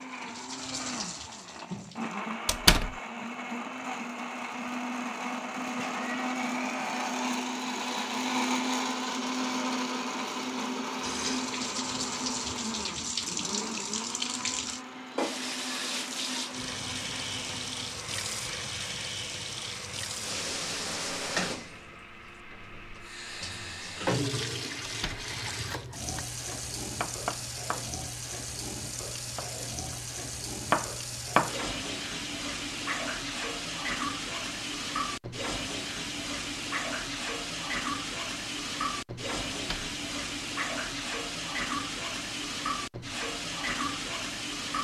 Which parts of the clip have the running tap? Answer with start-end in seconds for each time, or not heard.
0.0-2.2, 11.0-44.8.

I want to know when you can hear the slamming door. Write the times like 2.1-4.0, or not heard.
2.5-3.0, 24.8-25.3, 39.5-40.0.